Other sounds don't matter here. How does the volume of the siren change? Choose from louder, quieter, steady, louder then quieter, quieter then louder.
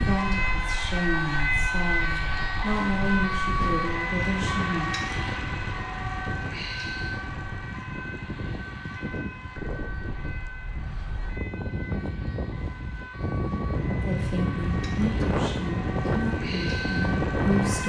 quieter then louder.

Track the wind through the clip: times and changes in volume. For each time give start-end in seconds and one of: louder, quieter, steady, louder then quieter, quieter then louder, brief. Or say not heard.
0.0-17.8 louder.